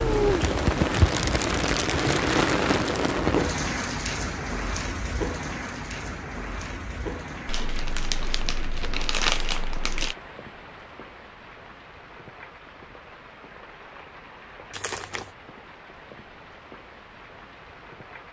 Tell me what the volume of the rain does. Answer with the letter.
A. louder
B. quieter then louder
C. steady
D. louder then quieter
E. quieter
E.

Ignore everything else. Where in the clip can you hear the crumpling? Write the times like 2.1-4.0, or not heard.
0.5-3.1, 7.5-10.2, 14.7-15.3.